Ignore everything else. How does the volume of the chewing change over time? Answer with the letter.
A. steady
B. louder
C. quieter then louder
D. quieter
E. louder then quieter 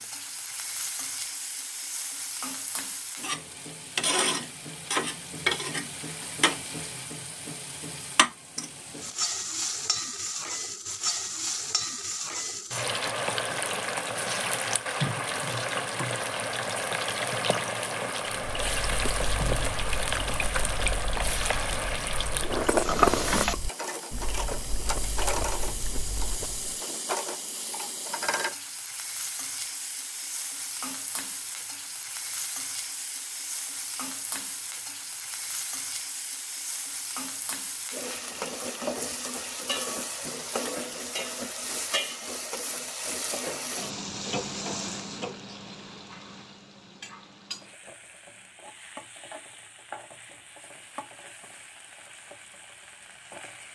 E.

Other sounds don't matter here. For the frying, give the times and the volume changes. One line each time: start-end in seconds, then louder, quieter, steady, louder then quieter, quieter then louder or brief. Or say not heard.
0.0-53.7 quieter.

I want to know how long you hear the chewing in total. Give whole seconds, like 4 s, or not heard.
8 s.